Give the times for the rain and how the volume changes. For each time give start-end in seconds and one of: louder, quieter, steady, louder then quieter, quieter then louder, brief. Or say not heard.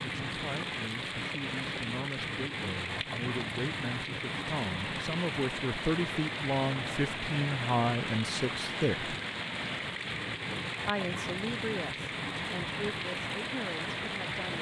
0.0-14.5 steady.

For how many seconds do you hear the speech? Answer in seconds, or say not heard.
13 s.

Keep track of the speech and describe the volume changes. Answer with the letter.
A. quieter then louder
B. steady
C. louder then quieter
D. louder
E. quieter
C.